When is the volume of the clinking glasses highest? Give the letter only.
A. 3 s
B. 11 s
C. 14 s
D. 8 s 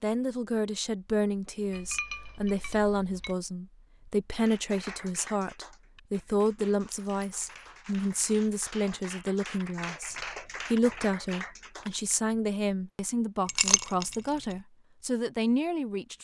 C.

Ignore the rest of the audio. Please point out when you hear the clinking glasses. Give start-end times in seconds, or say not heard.
1.7-3.4, 6.9-7.7, 13.4-14.2.